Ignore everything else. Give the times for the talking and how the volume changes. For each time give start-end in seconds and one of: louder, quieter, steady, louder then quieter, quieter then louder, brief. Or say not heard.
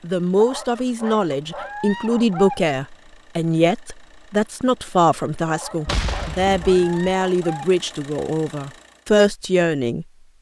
0.0-10.1 steady.